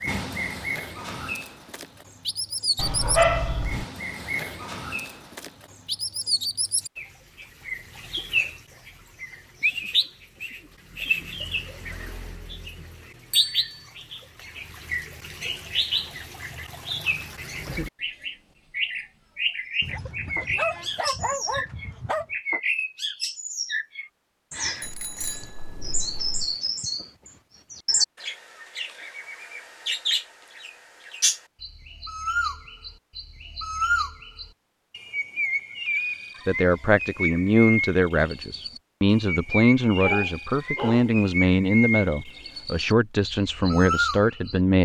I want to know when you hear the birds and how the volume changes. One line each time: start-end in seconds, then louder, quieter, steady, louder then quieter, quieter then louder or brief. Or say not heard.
0.0-44.6 steady.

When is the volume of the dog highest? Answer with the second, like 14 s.
3 s.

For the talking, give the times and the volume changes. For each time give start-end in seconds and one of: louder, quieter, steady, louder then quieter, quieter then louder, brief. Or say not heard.
36.5-44.8 steady.